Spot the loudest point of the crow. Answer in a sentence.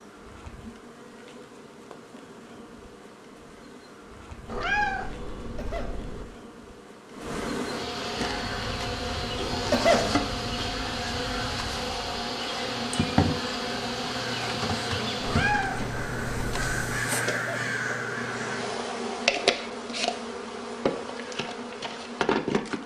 The loudest moment of the crow is at 17 seconds.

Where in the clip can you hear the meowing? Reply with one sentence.
You can hear the meowing from 4.5 to 6.2 s and from 15.2 to 16.8 s.